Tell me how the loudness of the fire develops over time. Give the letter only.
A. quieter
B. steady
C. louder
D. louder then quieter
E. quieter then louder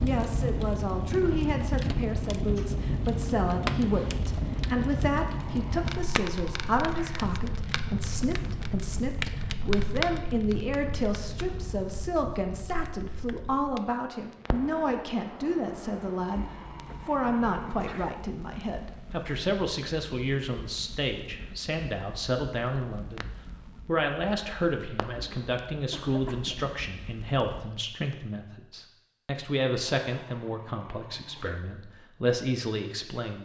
A.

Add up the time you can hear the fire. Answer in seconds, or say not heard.
28 s.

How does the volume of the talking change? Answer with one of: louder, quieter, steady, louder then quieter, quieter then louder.
steady.